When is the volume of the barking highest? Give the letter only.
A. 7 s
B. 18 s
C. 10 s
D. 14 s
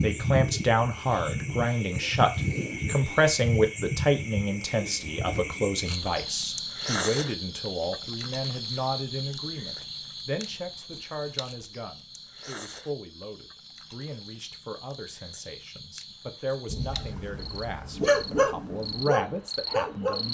B.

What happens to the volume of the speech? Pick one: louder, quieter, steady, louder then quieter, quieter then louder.
quieter then louder.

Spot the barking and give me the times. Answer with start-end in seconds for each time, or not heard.
16.6-20.2.